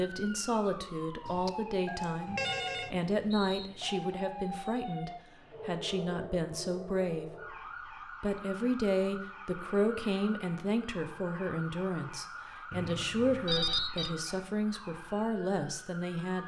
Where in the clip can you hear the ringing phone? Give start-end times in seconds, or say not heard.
1.2-2.9, 13.4-14.1.